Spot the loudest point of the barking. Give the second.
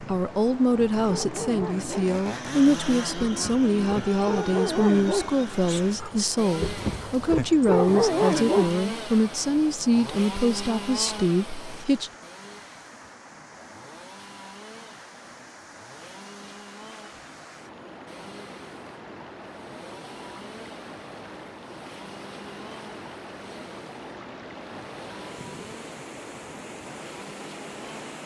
8 s.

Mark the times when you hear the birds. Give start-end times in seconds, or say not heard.
not heard.